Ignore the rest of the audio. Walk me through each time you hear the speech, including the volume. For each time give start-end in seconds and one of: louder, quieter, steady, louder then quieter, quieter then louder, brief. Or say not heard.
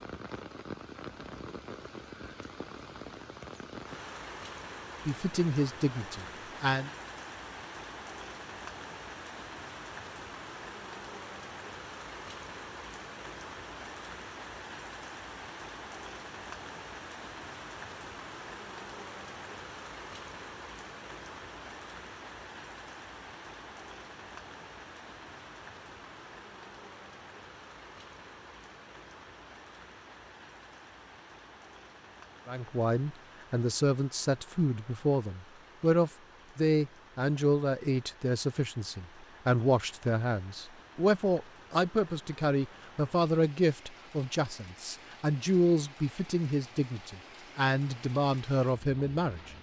5.0-6.9 brief
32.5-49.5 steady.